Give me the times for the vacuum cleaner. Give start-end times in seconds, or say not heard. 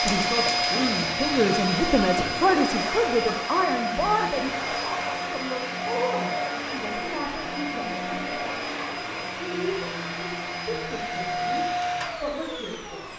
0.0-13.1.